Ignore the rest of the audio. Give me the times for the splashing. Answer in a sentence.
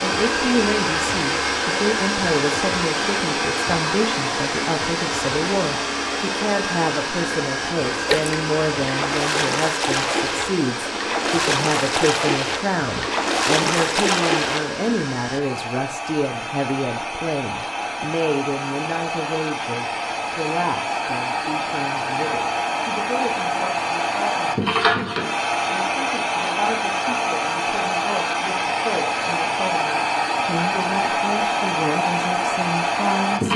You can hear the splashing from 8.1 to 14.7 s.